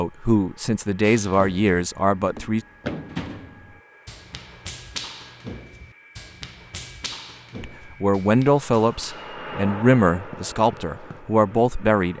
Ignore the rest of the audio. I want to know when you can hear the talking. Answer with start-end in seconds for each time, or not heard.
0.0-2.6, 7.6-12.1.